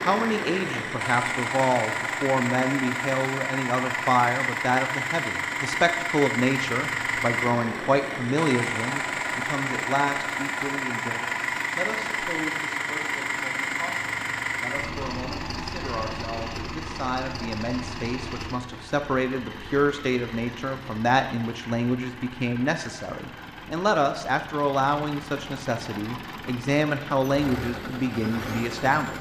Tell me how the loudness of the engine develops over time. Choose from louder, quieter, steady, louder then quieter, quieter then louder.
quieter.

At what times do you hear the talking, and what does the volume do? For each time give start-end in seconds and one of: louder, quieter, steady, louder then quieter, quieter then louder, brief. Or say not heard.
0.0-29.1 quieter then louder.